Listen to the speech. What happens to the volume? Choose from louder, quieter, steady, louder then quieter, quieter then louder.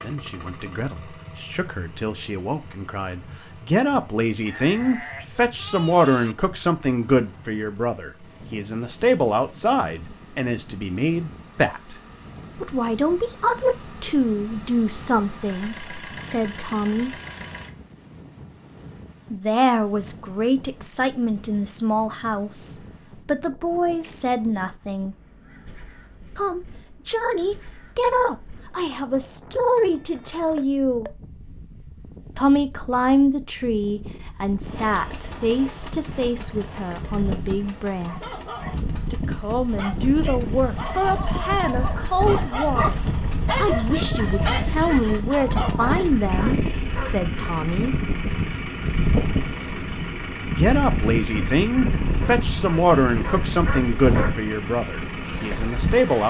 steady.